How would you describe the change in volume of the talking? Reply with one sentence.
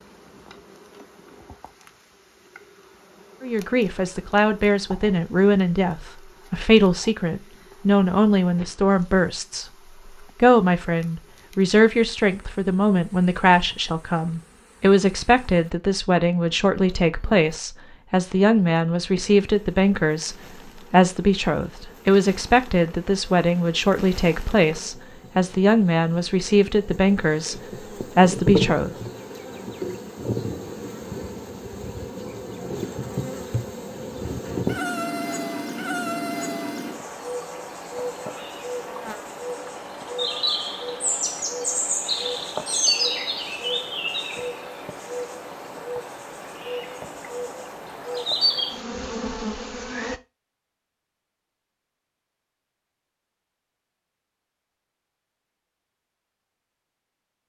The loudness of the talking stays about the same.